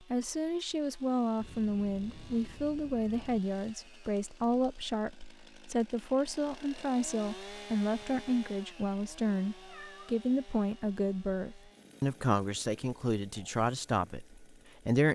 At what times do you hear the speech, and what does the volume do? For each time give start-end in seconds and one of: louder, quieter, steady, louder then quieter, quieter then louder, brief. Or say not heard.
0.1-15.1 steady.